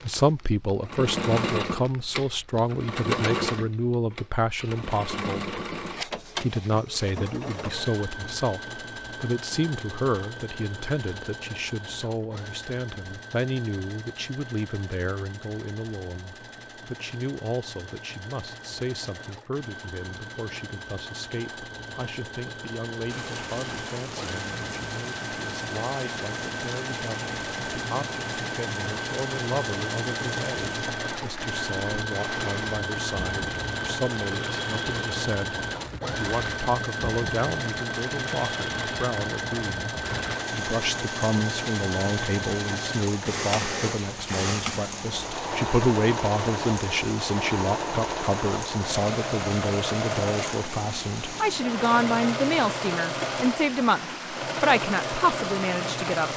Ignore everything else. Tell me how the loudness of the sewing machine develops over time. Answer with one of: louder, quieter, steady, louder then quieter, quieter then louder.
quieter then louder.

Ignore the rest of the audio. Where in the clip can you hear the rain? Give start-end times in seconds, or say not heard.
23.1-56.3.